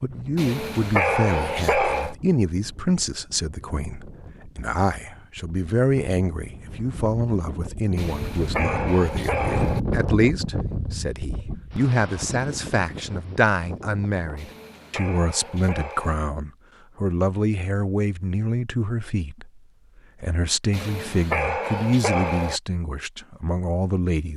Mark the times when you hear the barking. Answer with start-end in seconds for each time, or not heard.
0.3-2.1, 8.0-9.8, 14.3-16.2, 20.7-22.6.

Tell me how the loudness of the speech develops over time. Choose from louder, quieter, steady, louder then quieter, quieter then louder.
steady.